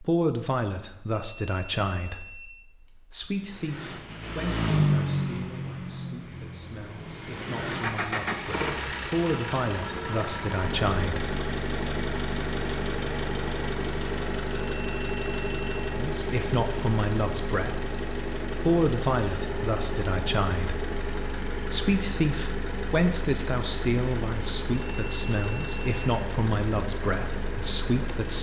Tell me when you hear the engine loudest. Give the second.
5 s.